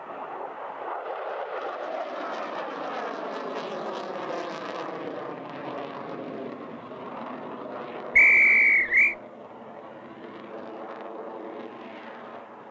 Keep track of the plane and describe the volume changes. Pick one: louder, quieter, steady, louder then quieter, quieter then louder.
quieter.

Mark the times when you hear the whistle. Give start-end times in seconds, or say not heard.
8.2-9.2.